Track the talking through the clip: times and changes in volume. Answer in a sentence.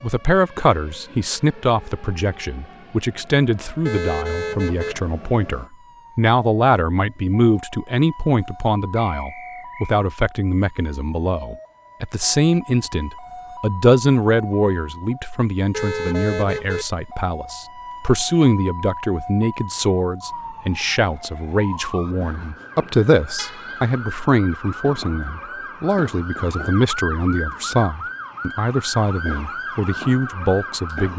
The talking can be heard from 0.0 to 31.1 s, at a steady volume.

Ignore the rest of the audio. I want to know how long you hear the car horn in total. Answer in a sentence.
The car horn can be heard for 3 seconds in total.